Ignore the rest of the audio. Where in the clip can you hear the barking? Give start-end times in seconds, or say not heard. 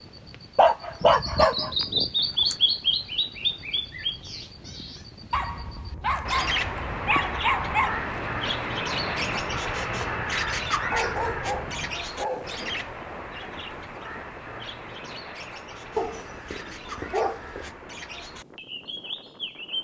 0.6-2.5, 5.3-8.0, 10.8-12.6, 15.9-17.7.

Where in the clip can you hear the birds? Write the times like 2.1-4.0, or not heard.
0.0-19.7.